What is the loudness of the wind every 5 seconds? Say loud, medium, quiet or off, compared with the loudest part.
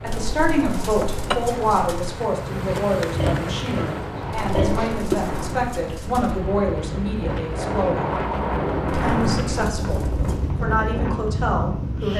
medium, loud, loud.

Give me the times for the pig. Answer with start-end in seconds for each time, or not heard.
3.1-5.0.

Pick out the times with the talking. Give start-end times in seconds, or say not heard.
0.0-8.1, 8.9-12.1.